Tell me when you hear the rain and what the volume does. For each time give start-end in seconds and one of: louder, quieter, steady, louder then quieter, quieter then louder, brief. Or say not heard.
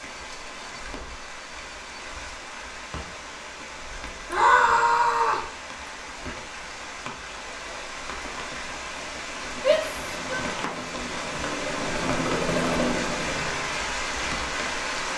0.0-15.1 louder.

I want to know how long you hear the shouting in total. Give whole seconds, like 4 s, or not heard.
2 s.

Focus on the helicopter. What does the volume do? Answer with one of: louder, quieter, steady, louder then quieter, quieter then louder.
louder.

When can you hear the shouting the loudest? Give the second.
5 s.